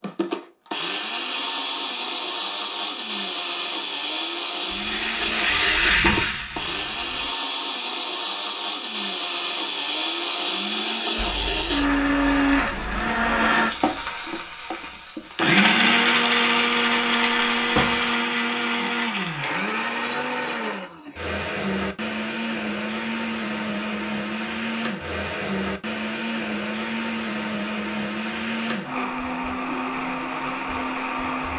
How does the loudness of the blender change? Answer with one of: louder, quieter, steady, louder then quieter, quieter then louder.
louder then quieter.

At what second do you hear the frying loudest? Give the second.
6 s.